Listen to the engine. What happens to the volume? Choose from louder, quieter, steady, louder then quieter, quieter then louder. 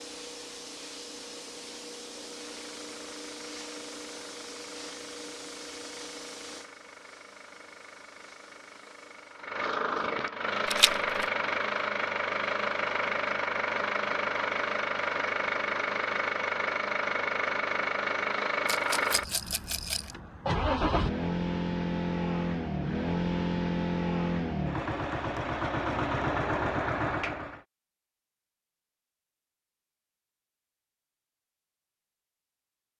louder.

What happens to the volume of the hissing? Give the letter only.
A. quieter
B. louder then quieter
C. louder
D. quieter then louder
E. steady
A.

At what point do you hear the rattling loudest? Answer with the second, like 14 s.
11 s.